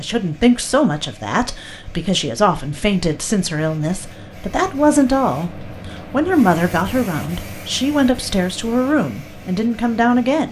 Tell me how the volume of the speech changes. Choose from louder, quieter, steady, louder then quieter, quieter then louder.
steady.